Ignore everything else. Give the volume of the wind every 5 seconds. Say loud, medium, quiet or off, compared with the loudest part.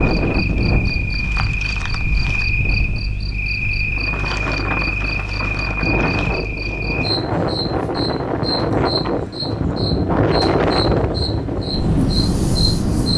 medium, loud, loud.